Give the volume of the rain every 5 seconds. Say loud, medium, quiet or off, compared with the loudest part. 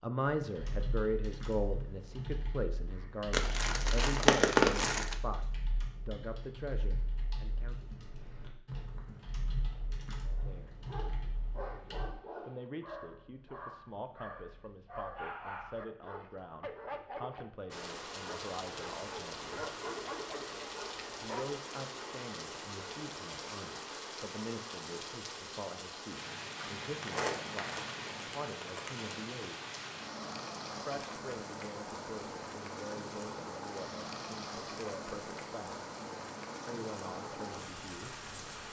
off, off, off, loud, loud, loud, loud, loud.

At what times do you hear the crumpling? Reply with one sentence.
The crumpling can be heard from 3.3 to 5.2 s and from 26.8 to 29.1 s.